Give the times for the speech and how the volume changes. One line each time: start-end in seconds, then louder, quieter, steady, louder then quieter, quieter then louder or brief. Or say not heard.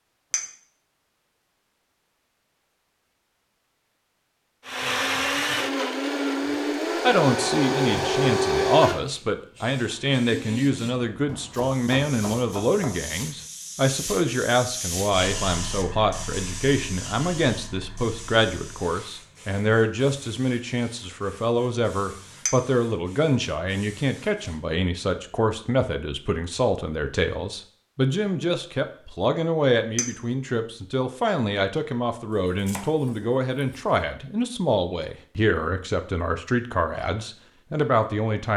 7.0-38.5 steady.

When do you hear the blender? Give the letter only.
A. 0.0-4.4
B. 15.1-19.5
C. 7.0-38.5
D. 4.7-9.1
D.